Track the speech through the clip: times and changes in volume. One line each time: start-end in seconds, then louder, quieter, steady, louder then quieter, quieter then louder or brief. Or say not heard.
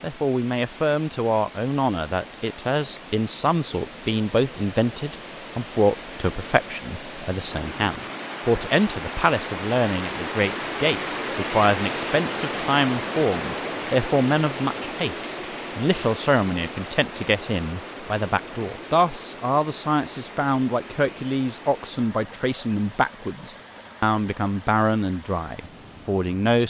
0.0-26.6 steady.